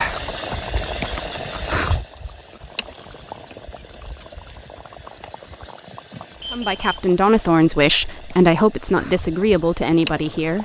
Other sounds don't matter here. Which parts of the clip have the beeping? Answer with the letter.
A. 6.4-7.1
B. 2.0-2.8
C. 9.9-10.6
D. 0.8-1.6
A.